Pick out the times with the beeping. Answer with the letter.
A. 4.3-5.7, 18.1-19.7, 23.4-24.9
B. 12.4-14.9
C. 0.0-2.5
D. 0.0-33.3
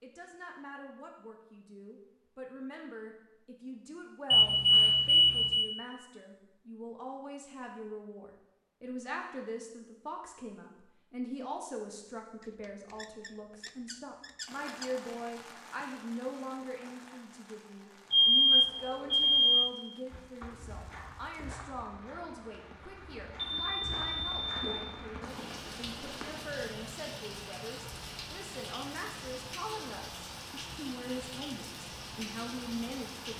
A.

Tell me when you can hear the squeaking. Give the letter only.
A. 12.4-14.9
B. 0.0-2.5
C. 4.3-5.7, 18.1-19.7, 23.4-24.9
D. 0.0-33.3
A.